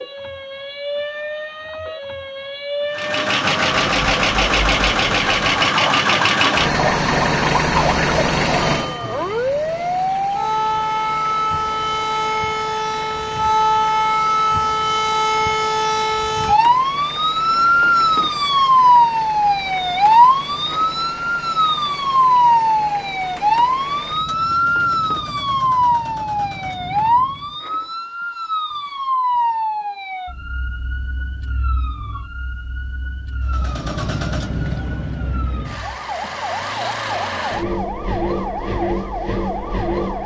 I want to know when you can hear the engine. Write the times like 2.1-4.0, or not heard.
2.9-27.6, 33.5-40.2.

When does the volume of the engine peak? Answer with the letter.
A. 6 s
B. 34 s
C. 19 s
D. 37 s
A.